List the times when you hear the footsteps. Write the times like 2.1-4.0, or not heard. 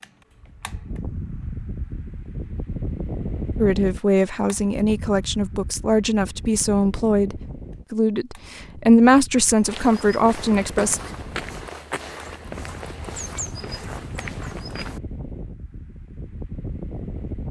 9.6-15.0.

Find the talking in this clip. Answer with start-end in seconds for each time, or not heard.
3.5-11.0.